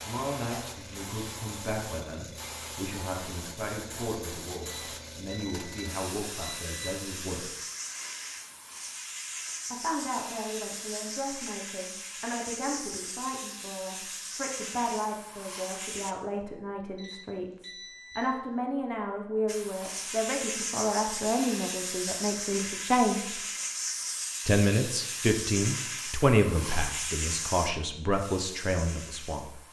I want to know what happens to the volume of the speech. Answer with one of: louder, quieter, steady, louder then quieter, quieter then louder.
louder.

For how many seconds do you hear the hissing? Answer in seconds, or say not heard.
26 s.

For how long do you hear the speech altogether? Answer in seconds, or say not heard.
26 s.